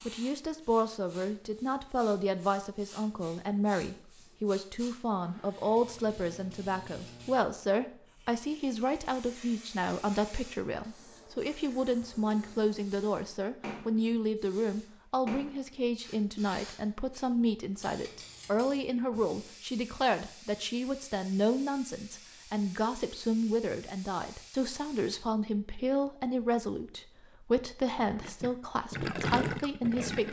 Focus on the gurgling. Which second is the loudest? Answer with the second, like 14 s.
29 s.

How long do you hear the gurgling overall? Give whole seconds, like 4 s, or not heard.
2 s.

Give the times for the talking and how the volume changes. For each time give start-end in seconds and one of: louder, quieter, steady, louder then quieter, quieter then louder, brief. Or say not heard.
0.1-30.2 steady.